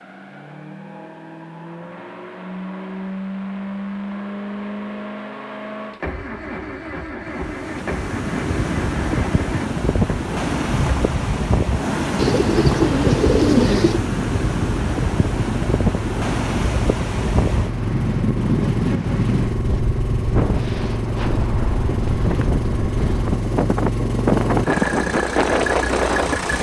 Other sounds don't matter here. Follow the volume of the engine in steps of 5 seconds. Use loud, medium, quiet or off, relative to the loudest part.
medium, medium, loud, loud, loud, loud.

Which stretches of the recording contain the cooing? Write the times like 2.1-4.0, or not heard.
12.2-14.0.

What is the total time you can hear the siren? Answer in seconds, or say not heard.
not heard.